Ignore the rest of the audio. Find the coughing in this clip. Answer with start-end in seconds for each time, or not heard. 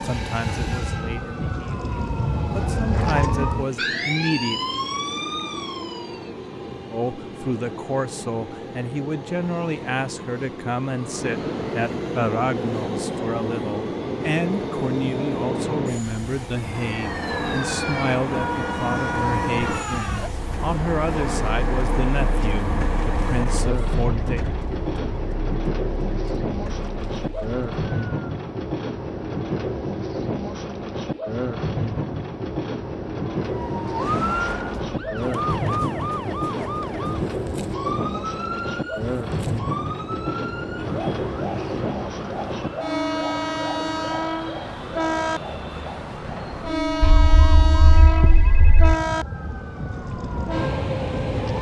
not heard.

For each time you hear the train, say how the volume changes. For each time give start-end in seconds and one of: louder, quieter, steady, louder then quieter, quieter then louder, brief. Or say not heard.
0.0-51.5 louder.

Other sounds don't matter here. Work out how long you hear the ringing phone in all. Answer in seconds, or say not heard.
2 s.